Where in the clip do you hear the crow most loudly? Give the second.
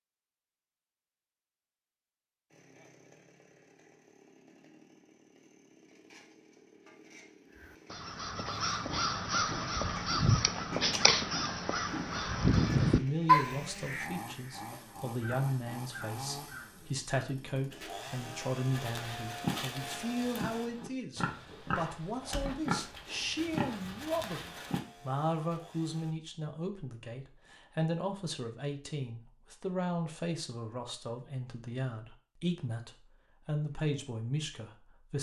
13 s.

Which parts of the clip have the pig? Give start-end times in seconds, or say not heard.
18.7-24.8.